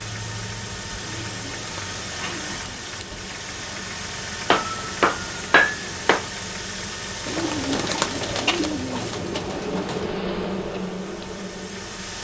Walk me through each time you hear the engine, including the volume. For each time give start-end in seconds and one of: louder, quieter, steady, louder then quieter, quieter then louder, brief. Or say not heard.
0.0-12.1 quieter.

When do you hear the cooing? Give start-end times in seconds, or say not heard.
1.0-3.7, 7.2-10.2.